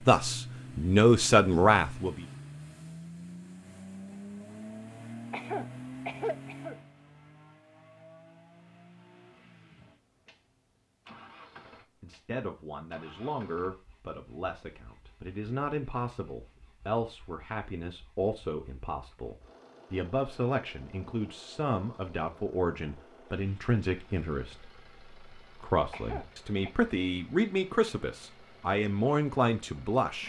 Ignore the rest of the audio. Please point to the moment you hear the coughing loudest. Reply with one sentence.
The volume of the coughing peaks at 6 seconds.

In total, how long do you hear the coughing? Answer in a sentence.
The coughing can be heard for 2 seconds in total.